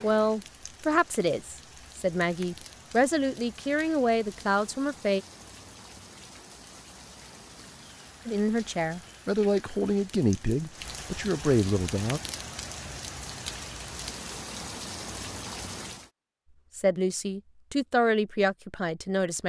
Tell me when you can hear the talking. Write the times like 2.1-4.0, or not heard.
0.0-5.2, 8.2-12.2, 16.8-19.4.